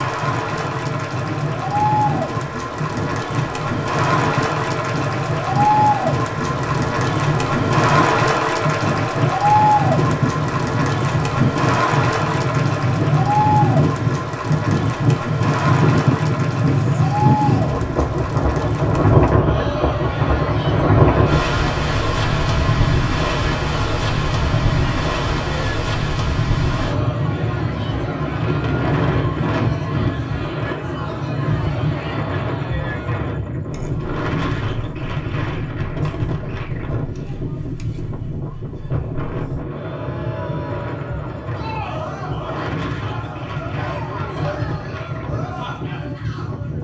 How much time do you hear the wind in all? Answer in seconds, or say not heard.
47 s.